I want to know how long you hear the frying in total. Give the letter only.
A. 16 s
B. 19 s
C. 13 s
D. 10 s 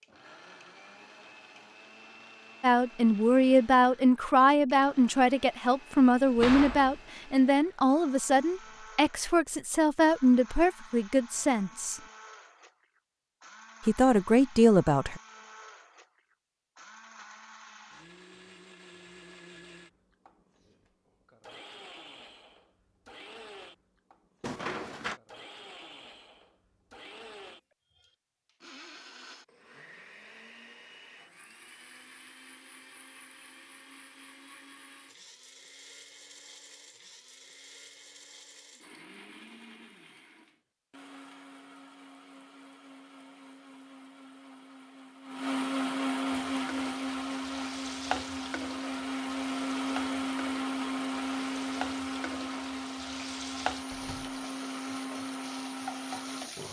D.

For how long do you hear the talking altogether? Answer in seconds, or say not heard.
11 s.